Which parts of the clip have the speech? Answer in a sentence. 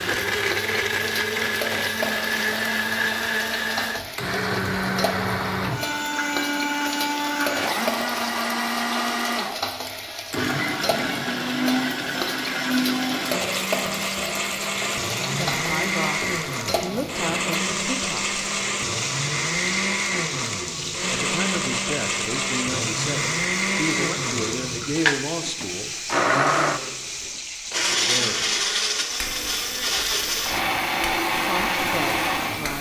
The speech can be heard from 15.1 to 18.4 s, from 21.1 to 25.9 s, from 27.9 to 28.6 s and from 31.4 to 32.7 s.